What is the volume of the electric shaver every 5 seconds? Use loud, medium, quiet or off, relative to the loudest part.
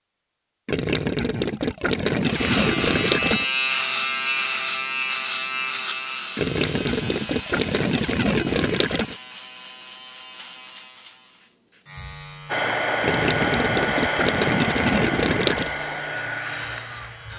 loud, medium, quiet, quiet.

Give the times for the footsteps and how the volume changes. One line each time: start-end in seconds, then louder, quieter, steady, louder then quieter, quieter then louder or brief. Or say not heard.
not heard.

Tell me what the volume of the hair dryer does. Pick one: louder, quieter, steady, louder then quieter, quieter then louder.
quieter.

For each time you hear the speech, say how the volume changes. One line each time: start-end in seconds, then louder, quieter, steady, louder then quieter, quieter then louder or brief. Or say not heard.
not heard.